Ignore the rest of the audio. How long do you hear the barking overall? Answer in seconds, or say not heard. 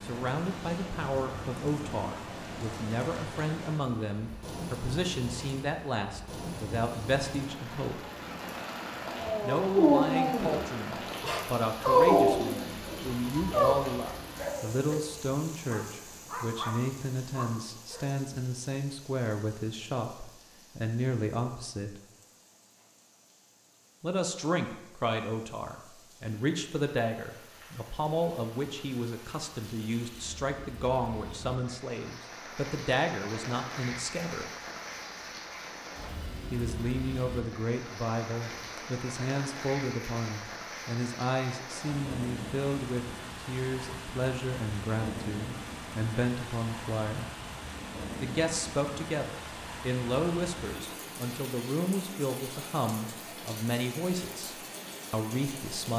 9 s.